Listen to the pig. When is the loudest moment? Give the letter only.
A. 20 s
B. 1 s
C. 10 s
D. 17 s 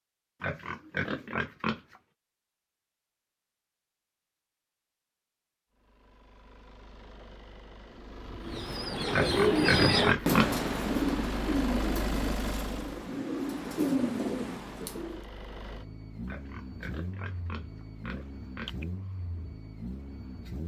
C.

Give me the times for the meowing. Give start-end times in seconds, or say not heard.
not heard.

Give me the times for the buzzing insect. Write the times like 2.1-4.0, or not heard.
not heard.